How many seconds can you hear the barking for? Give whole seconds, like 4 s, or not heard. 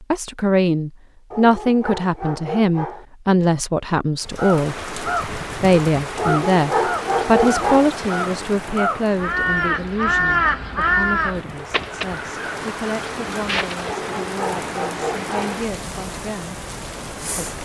5 s.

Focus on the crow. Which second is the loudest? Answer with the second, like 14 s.
10 s.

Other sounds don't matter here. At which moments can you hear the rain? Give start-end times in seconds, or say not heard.
4.2-17.6.